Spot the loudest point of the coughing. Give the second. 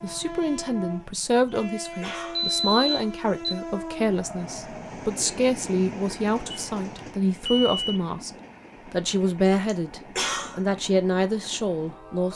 10 s.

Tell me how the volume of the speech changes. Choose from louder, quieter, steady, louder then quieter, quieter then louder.
steady.